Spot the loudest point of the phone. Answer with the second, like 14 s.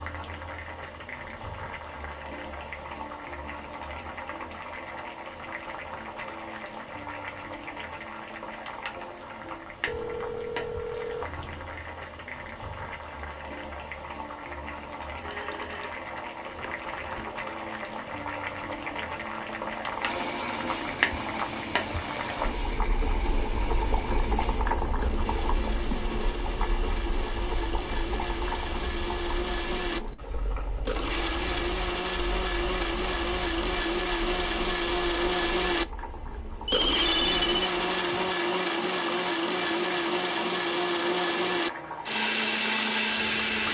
37 s.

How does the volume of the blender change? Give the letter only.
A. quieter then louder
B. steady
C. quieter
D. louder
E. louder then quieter
D.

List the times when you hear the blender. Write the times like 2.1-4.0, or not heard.
20.0-43.6.